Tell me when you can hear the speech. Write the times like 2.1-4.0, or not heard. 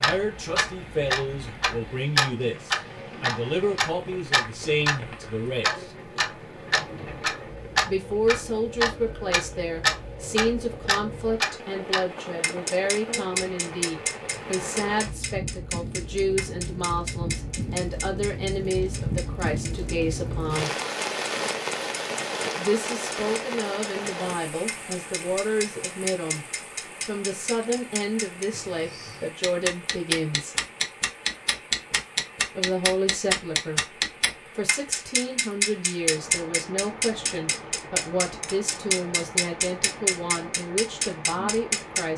0.0-5.9, 7.8-20.7, 22.6-26.4, 27.1-30.6, 32.5-42.1.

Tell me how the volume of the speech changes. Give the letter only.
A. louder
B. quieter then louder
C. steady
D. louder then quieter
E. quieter
C.